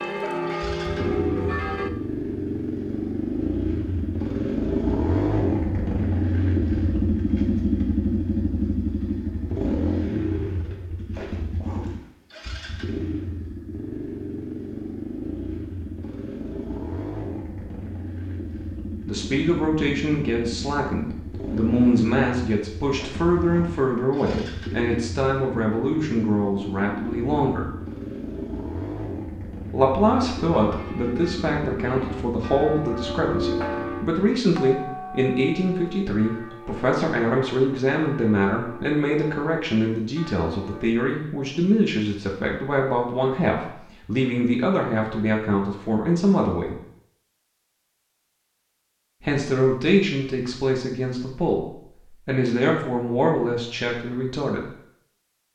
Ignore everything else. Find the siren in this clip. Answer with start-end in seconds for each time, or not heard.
not heard.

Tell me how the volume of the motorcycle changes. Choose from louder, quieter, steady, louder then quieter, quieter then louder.
quieter.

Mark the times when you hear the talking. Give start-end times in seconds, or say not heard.
19.1-27.7, 29.7-46.8, 49.2-54.7.